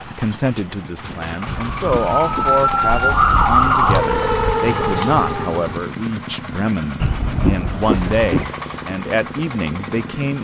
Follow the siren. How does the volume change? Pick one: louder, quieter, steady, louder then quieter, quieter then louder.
louder then quieter.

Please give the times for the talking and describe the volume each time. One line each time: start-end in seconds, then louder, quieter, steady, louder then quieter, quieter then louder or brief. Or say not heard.
0.1-10.3 steady.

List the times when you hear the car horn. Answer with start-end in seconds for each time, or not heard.
1.5-2.5, 7.0-8.5.